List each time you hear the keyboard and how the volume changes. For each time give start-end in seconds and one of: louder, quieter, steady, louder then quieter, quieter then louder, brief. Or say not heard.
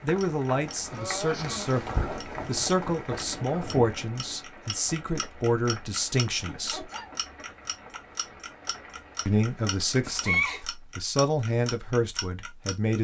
not heard.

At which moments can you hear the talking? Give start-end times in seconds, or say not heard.
0.0-6.8, 9.2-12.9.